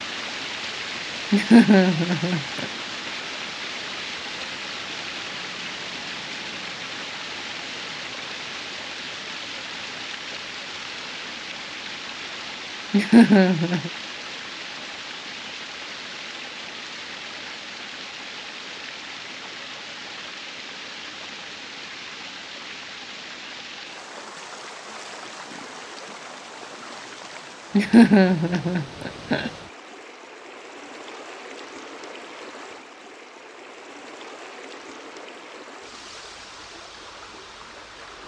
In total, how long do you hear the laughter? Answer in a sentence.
The laughter can be heard for 4 seconds in total.